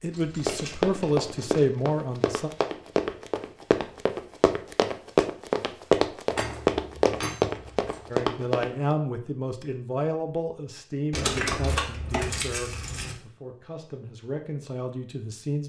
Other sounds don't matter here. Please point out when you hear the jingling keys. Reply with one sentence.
You can hear the jingling keys from 0.1 to 1.7 s, from 6.3 to 8.1 s and from 11.1 to 13.2 s.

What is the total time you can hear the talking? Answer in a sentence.
The talking can be heard for 10 seconds in total.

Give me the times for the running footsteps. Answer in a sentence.
You can hear the running footsteps from 0.3 to 8.9 s.